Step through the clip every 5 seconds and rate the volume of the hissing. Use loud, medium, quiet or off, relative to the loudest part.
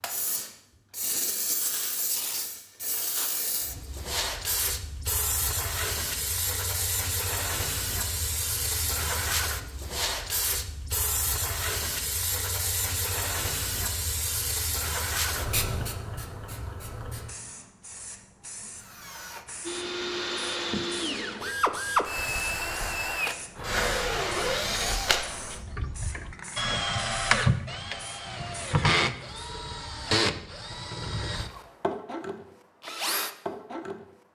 loud, loud, loud, medium, quiet, quiet, off.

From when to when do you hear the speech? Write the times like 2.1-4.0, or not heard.
not heard.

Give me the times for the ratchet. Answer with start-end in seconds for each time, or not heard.
not heard.